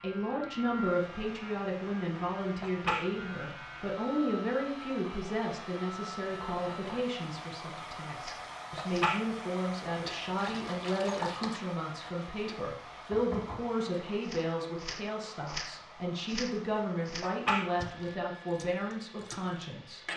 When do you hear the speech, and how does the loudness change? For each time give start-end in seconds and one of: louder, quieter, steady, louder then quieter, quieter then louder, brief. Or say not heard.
0.0-20.1 steady.